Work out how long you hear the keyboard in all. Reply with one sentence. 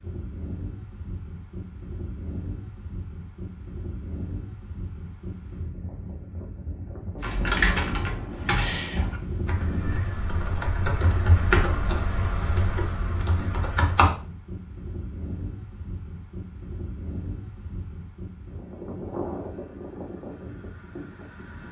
The keyboard can be heard for 7 seconds in total.